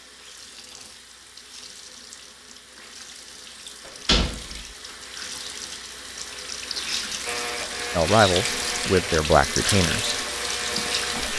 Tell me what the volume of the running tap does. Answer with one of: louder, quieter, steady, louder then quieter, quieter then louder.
louder.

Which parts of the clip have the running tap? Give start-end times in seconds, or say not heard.
0.0-11.3.